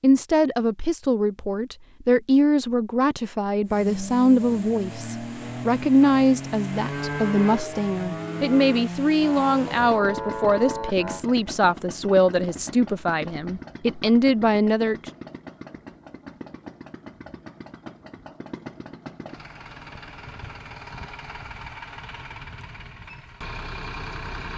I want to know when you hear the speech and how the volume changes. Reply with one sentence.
The speech can be heard from 0.0 to 15.1 s, at a steady volume.